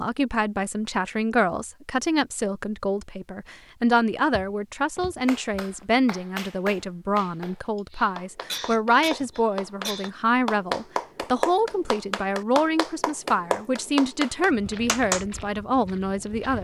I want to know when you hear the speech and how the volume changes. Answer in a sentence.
You can hear the speech from 0.0 to 16.5 s, at a steady volume.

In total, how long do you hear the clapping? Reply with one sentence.
You can hear the clapping for 10 seconds altogether.